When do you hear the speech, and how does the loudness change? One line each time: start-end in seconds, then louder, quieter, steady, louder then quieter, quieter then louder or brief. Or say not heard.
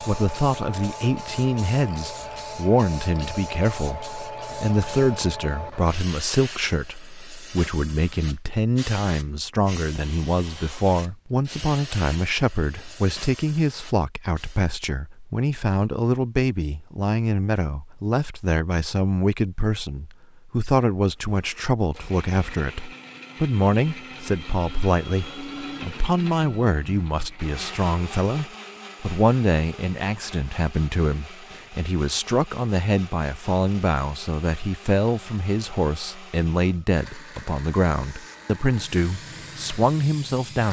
0.0-40.6 steady.